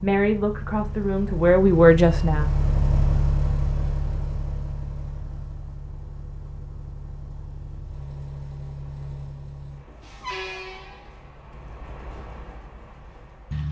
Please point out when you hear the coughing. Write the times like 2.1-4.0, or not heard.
not heard.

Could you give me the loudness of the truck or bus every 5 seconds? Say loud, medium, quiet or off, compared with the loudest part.
loud, medium, medium.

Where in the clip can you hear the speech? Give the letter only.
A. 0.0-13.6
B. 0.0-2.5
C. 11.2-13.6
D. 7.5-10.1
B.